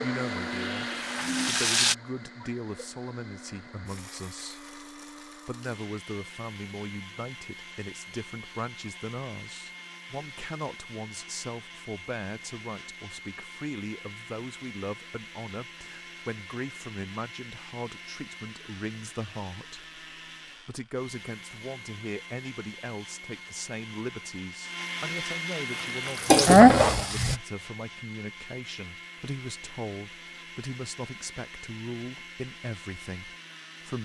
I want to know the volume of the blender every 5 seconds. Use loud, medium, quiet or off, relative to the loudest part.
loud, medium, medium, medium, medium, loud, medium.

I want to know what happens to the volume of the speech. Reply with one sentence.
The volume of the speech stays about the same.